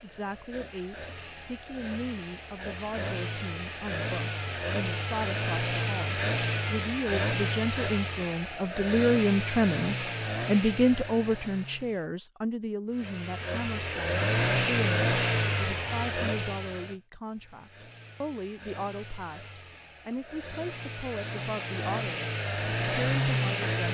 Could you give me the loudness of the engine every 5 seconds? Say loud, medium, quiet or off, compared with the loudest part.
medium, loud, loud, loud, loud.